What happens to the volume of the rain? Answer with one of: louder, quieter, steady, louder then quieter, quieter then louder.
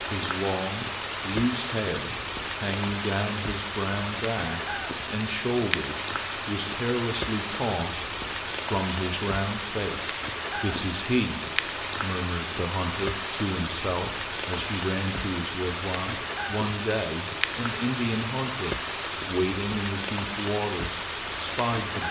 steady.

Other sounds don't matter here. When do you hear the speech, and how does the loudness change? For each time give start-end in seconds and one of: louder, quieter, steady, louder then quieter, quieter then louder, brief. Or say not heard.
0.0-22.0 steady.